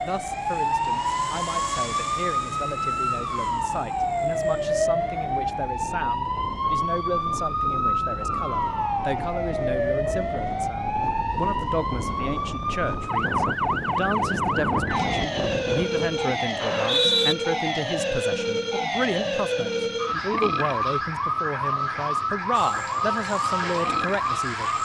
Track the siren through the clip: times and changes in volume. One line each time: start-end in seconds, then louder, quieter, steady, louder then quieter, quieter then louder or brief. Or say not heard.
0.0-24.7 steady.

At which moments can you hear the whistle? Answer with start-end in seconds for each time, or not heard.
16.6-17.4.